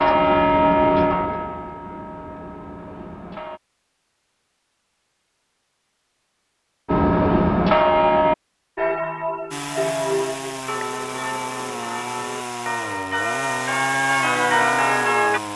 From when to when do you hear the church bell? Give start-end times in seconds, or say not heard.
0.0-3.6, 6.8-15.4.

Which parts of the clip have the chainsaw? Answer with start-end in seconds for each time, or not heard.
9.5-15.5.